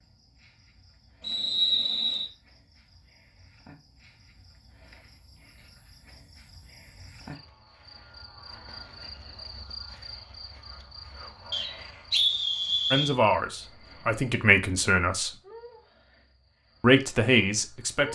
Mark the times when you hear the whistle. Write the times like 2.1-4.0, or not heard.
1.2-2.3, 11.5-13.2.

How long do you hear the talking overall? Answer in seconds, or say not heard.
4 s.